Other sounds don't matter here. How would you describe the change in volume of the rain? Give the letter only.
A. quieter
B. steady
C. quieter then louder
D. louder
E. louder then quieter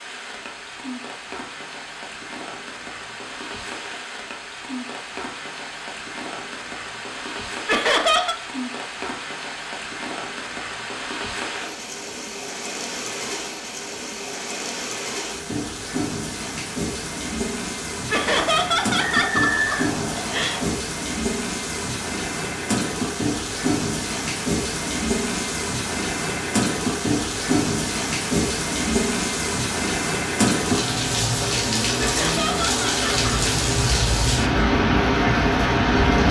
D.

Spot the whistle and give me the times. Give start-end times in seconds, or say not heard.
19.0-20.8.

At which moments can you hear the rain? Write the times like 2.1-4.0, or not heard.
0.0-36.2.